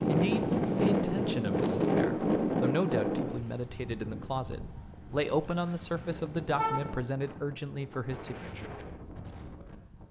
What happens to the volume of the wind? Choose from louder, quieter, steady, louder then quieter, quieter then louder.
quieter.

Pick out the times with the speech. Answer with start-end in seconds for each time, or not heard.
0.1-8.8.